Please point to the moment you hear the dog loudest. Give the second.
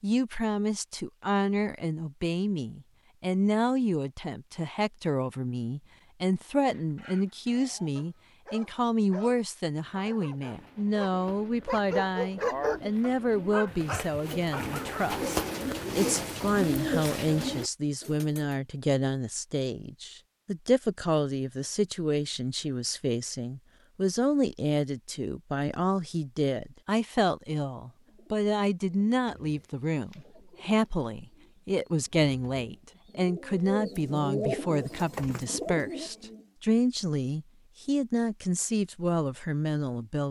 13 s.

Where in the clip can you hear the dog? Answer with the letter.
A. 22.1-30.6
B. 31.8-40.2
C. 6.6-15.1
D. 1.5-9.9
C.